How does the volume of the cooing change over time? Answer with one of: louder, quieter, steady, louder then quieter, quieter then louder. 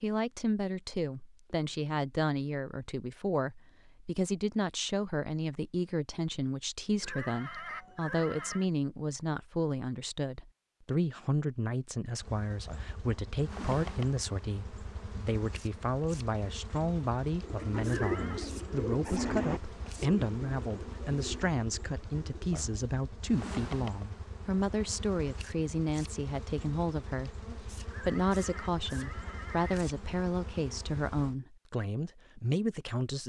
quieter.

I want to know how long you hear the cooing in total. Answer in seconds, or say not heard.
5 s.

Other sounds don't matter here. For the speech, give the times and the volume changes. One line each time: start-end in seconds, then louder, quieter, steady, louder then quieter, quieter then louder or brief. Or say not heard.
0.0-33.2 steady.